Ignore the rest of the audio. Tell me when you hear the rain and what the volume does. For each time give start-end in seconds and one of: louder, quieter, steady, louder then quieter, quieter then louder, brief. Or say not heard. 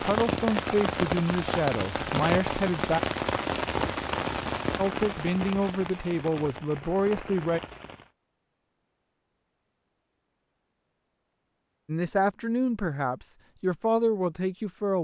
0.0-8.1 quieter.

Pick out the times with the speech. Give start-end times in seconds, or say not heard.
0.0-3.0, 4.8-7.6, 11.8-14.9.